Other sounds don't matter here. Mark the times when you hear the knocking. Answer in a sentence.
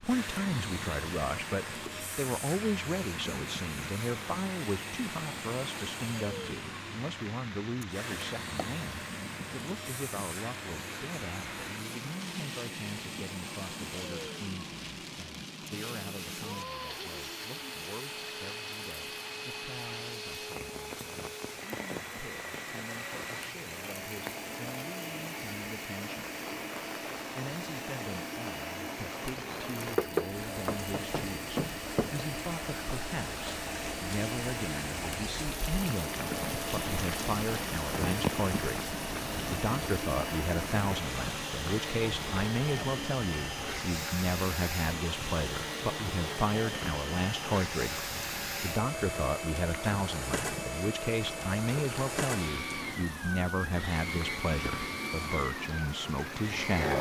You can hear the knocking from 7.9 to 8.8 s and from 29.9 to 32.2 s.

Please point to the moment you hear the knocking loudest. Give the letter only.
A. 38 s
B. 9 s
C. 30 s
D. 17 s
C.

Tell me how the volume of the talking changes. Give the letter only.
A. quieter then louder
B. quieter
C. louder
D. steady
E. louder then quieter
A.